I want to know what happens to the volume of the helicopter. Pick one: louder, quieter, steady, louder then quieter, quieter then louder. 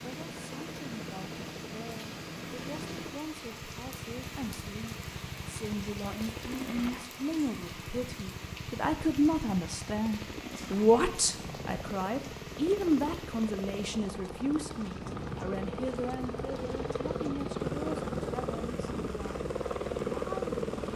louder.